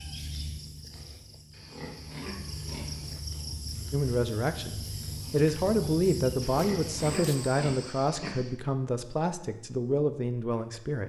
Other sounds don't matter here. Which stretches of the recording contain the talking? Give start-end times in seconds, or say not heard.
3.9-11.0.